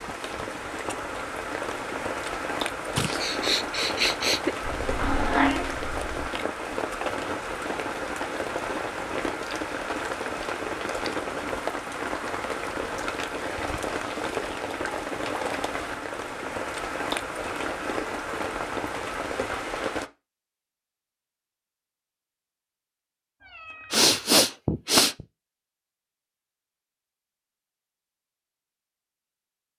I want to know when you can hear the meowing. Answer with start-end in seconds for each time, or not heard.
4.6-6.2, 23.4-24.1.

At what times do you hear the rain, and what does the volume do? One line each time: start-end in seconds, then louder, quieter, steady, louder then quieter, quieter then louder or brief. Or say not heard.
0.0-20.1 steady.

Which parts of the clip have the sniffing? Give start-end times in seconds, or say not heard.
3.0-4.5, 23.9-25.2.